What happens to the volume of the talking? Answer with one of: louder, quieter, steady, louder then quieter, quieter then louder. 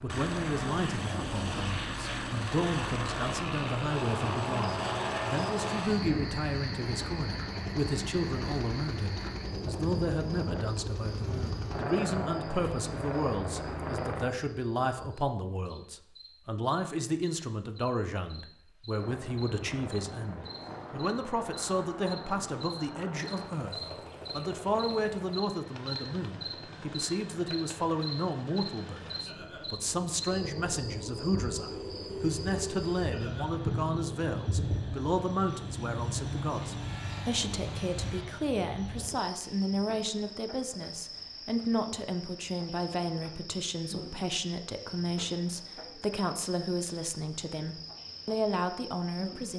steady.